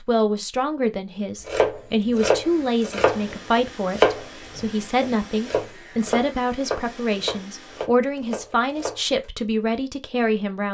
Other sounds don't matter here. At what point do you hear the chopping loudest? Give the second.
4 s.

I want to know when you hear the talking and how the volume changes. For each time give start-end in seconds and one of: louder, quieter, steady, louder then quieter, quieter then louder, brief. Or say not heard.
0.0-10.6 steady.